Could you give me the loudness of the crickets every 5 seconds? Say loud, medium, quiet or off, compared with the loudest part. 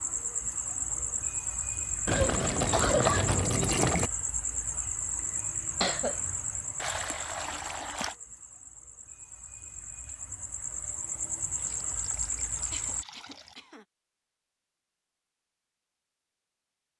loud, medium, loud, off.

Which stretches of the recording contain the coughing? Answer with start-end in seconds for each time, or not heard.
2.1-3.3, 5.8-6.2, 12.7-13.8.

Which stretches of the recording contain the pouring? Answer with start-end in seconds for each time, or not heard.
2.0-4.1, 6.8-8.2, 11.6-13.6.